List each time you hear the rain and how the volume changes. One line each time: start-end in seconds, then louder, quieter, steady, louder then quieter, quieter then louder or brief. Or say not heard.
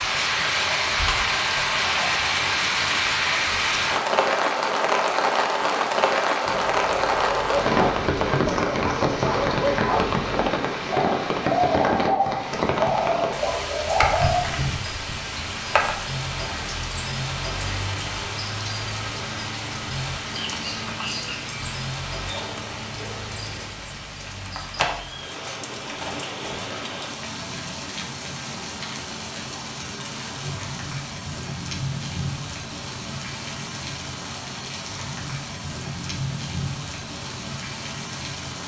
0.0-38.6 quieter.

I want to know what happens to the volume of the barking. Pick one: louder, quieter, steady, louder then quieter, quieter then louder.
steady.